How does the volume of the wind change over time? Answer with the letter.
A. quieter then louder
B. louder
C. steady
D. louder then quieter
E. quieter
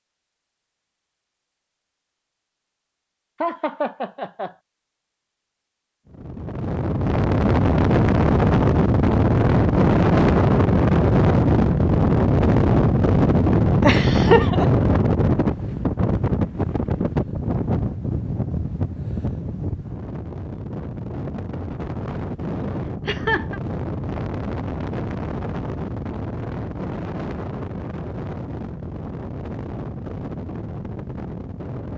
E.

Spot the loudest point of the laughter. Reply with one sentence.
The volume of the laughter peaks at 14 seconds.